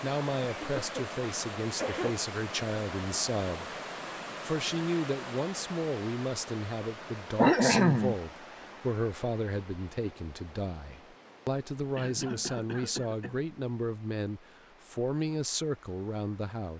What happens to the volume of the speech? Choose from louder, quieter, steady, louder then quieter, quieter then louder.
steady.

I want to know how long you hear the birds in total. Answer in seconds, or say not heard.
not heard.